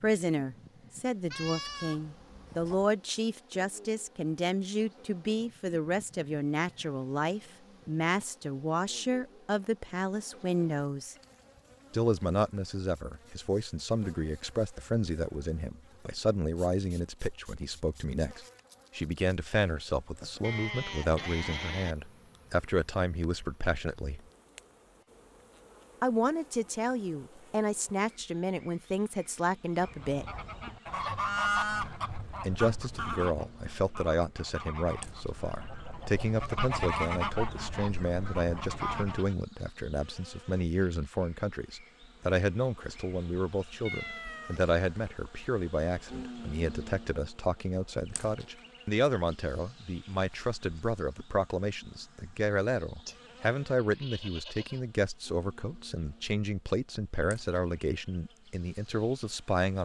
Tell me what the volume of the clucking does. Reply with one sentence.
The loudness of the clucking goes down, then up.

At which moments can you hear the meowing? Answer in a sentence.
You can hear the meowing from 43.9 to 44.6 s.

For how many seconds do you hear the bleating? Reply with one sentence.
You can hear the bleating for 5 seconds altogether.